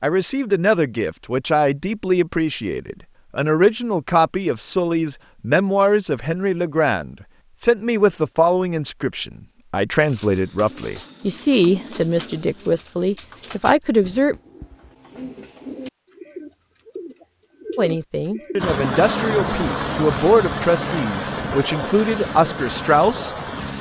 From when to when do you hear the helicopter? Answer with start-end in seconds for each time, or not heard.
18.6-23.7.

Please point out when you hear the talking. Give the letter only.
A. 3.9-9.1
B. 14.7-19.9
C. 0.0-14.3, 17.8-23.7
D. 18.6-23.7
C.